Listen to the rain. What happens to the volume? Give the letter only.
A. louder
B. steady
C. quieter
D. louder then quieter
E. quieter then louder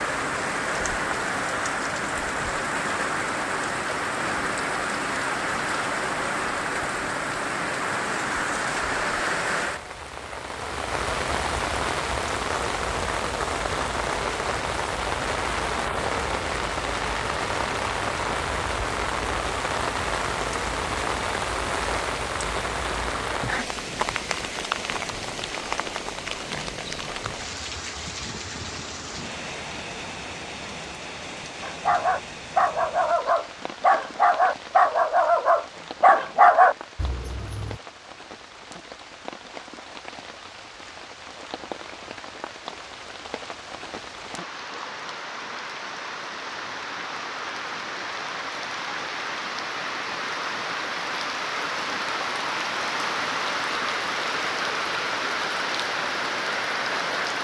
E.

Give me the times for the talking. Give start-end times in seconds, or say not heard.
not heard.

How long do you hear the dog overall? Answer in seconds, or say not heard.
6 s.